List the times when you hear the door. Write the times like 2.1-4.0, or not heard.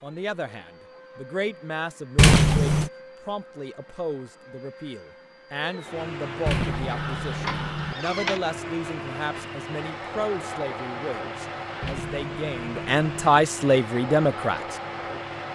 2.1-2.9, 6.5-8.0, 11.8-13.3.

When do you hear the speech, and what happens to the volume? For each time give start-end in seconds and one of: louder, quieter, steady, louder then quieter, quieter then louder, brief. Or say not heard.
0.0-14.8 louder.